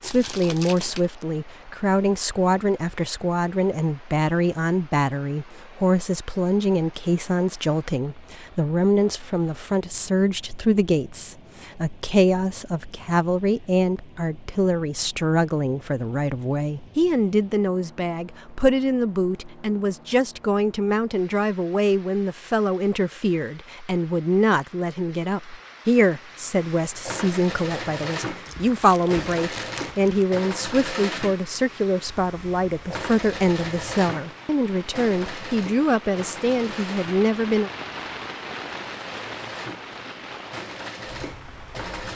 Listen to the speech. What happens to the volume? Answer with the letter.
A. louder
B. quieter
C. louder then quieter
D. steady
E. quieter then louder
D.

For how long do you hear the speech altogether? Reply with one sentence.
The speech can be heard for 38 seconds in total.